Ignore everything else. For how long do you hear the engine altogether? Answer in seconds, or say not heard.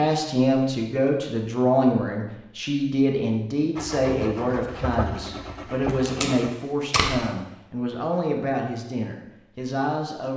3 s.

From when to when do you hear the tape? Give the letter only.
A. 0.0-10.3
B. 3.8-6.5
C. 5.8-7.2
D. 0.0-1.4
C.